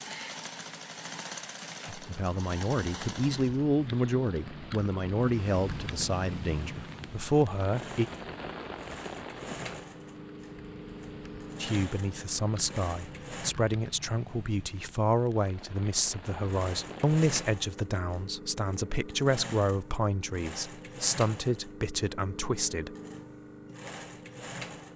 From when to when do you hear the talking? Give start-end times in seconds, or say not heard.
1.9-8.1, 11.6-22.9.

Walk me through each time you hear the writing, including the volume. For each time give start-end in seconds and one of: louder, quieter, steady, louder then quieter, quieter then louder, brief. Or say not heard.
not heard.